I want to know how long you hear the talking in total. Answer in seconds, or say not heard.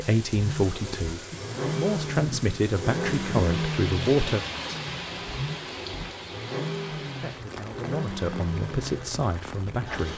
7 s.